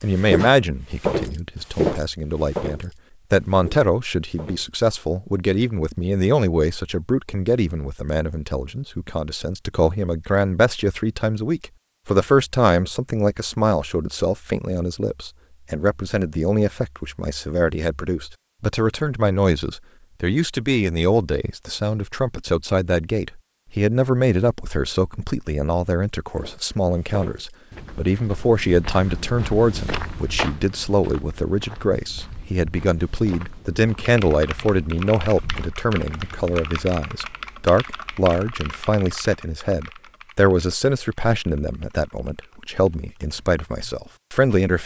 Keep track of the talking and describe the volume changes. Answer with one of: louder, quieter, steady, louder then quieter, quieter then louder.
steady.